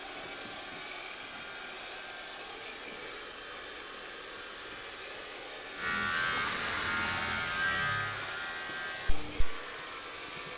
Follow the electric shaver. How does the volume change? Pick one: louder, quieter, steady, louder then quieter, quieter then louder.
louder then quieter.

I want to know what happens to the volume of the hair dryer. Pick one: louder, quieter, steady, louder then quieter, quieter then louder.
steady.